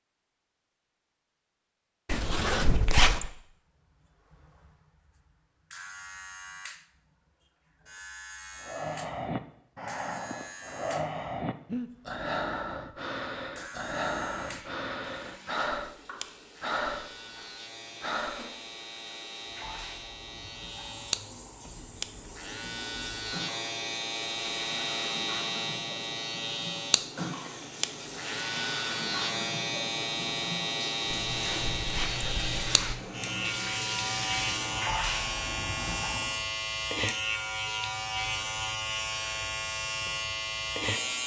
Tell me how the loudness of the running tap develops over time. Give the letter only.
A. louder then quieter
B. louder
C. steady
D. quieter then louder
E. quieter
B.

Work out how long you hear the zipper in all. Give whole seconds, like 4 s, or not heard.
3 s.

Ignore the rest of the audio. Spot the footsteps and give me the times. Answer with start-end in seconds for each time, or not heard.
not heard.